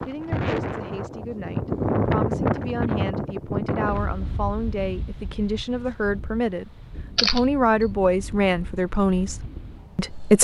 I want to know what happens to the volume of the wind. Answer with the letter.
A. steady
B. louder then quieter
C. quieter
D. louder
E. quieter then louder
C.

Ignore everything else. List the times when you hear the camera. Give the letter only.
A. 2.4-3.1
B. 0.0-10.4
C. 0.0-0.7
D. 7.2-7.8
D.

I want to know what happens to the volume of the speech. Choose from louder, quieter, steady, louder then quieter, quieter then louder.
louder.